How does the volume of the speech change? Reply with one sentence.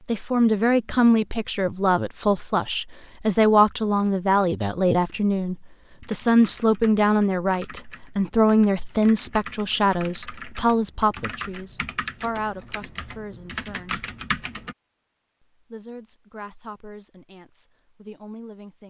The volume of the speech goes down.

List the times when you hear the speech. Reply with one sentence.
You can hear the speech from 0.1 to 14.1 s and from 15.6 to 18.8 s.